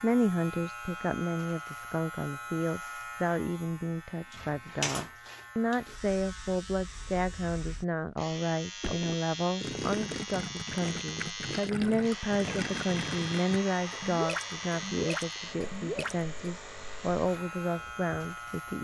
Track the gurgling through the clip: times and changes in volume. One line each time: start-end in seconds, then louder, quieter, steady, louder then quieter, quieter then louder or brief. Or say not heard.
8.8-16.6 steady.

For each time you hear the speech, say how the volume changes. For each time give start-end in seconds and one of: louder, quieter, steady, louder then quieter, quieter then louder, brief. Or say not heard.
0.0-18.8 steady.